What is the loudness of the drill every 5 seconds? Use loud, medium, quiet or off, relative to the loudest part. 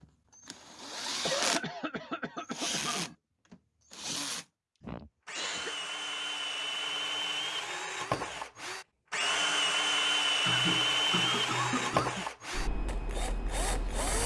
medium, loud, loud.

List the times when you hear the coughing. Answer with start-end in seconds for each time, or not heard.
1.2-3.1, 4.8-5.8, 10.4-12.2.